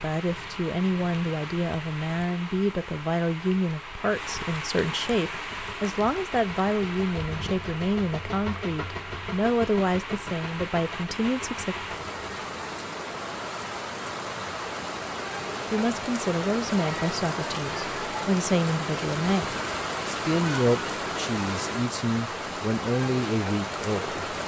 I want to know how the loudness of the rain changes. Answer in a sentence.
The loudness of the rain goes up.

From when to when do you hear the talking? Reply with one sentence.
The talking can be heard from 0.0 to 11.8 s and from 15.7 to 24.4 s.